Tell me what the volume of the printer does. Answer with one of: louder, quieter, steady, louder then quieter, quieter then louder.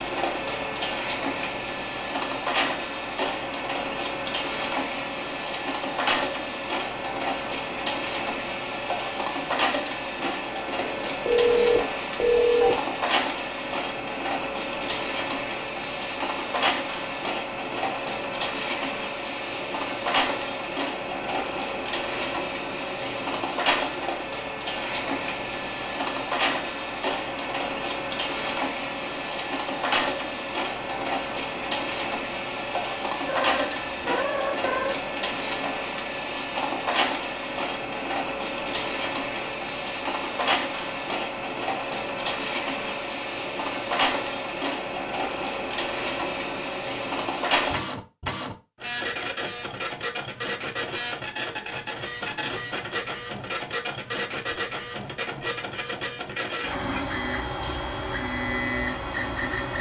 steady.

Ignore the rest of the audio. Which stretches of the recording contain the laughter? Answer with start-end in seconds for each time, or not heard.
not heard.